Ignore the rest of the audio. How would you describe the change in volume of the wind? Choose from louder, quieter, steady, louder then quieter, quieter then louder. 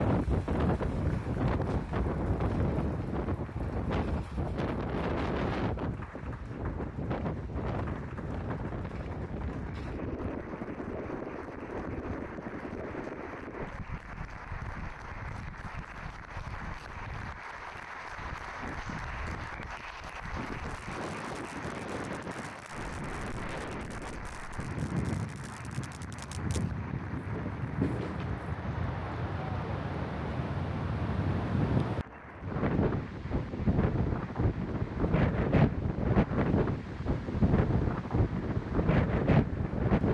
quieter then louder.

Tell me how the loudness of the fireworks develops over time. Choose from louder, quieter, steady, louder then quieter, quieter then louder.
louder.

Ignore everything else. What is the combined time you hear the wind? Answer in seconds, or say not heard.
40 s.